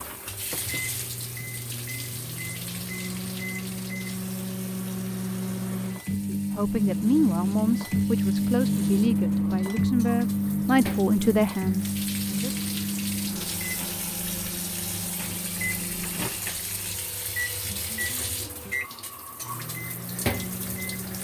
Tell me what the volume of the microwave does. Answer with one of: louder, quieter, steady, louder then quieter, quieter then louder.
louder then quieter.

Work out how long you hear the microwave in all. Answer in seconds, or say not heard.
21 s.